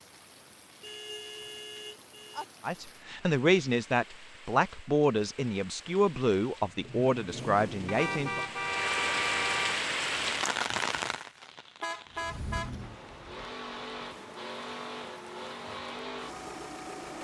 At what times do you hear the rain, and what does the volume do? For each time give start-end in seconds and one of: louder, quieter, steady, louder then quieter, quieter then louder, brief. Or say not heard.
0.0-17.2 louder then quieter.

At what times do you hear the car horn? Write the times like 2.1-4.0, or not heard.
0.8-2.5, 7.8-9.8, 11.8-13.5.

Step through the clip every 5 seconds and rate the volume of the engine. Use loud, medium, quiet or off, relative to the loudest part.
off, loud, loud, loud.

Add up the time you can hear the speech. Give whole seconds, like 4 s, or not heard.
6 s.